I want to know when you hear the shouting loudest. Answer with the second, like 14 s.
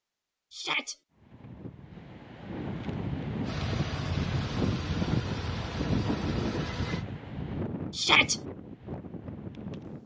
8 s.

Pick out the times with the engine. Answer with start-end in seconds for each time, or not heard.
3.4-7.0.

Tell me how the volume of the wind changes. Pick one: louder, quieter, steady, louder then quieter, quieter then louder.
louder then quieter.